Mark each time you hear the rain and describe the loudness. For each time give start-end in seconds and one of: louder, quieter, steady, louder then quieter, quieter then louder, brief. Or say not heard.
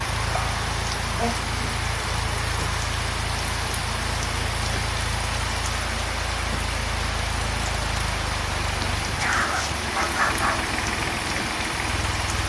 0.0-12.4 steady.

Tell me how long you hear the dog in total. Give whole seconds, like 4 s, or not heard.
3 s.